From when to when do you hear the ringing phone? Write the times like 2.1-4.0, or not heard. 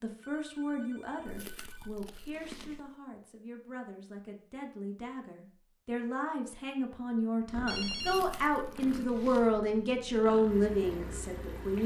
0.2-2.0, 7.7-8.2.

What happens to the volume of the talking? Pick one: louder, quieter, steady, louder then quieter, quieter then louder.
quieter then louder.